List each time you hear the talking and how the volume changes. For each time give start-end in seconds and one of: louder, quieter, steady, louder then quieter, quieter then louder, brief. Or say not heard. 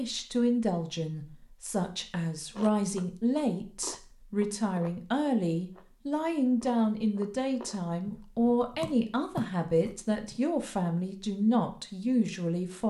0.0-12.8 steady.